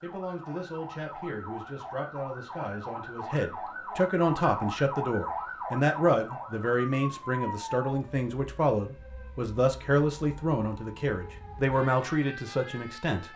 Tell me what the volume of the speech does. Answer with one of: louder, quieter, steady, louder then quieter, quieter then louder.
louder.